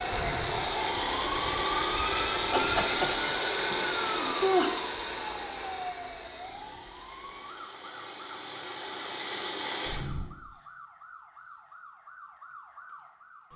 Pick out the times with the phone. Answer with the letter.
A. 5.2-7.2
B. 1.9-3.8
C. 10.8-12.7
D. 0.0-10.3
B.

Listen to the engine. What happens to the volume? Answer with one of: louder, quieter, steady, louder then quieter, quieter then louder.
quieter then louder.